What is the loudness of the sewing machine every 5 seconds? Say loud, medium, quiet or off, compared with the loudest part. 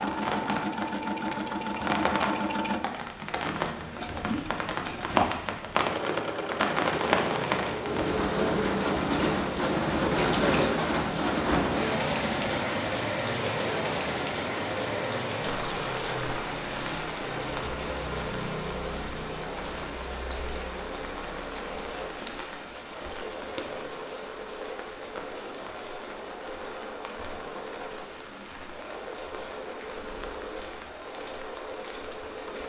loud, loud, loud, medium, medium, medium, medium.